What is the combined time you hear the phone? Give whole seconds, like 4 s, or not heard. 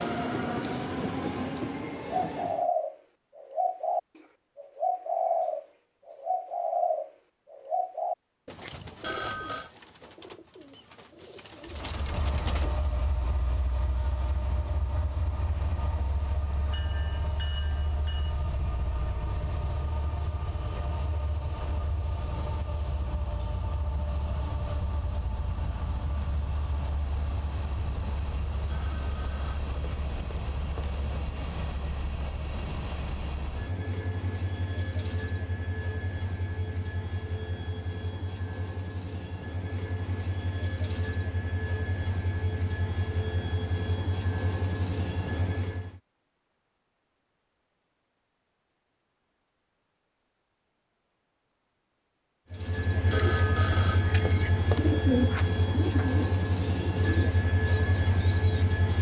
5 s.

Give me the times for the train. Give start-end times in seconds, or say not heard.
0.0-2.7, 11.7-46.0, 52.5-58.9.